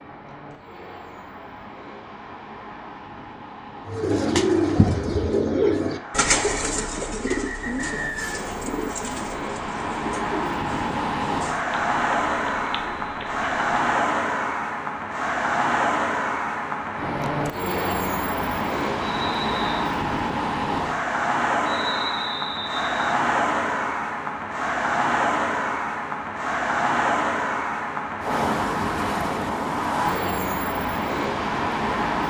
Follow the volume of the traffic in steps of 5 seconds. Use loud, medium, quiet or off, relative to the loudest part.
quiet, medium, loud, loud, loud, loud, loud.